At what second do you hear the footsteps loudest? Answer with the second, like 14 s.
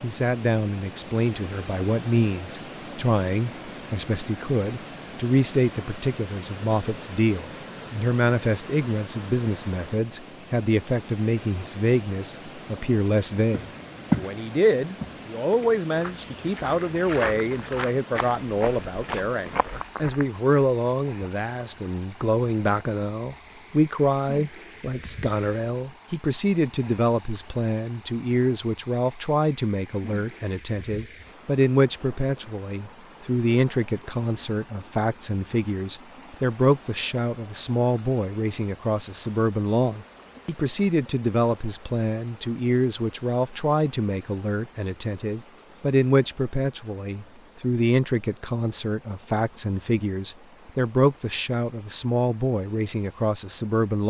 14 s.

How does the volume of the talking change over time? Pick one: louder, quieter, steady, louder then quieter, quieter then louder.
steady.